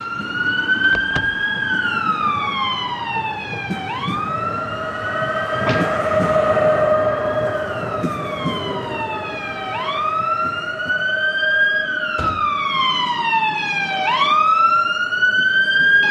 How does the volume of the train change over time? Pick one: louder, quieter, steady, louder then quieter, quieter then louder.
louder then quieter.